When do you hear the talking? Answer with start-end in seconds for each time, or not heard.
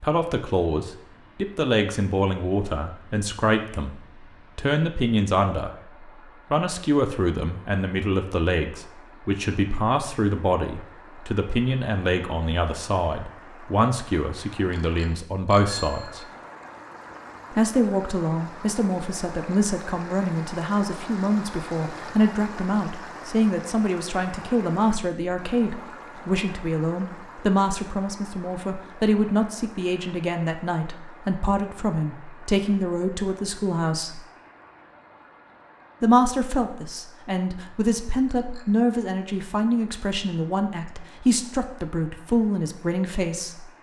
0.0-5.7, 6.5-16.2, 17.5-34.2, 36.0-43.6.